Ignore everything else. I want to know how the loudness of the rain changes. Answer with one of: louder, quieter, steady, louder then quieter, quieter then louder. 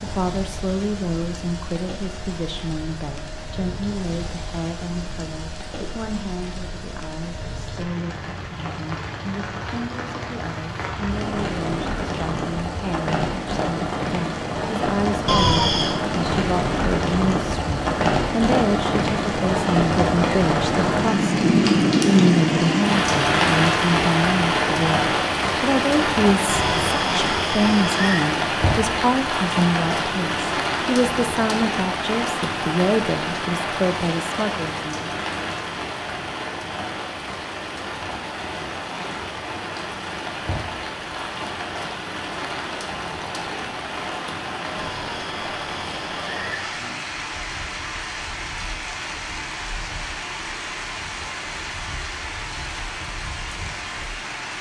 louder then quieter.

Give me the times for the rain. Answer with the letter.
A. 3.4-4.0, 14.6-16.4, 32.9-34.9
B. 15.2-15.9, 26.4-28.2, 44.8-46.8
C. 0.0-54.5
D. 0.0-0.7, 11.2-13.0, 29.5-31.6
C.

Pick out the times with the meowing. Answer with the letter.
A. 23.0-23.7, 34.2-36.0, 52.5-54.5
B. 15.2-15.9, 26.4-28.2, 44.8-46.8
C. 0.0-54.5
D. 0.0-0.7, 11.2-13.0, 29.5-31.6
B.